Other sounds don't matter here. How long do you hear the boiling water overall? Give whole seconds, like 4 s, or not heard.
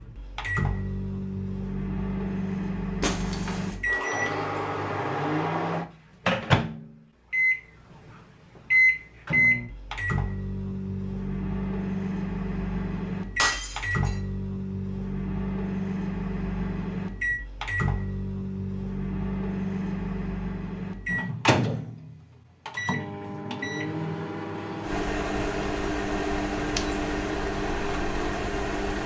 not heard.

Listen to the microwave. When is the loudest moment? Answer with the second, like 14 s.
9 s.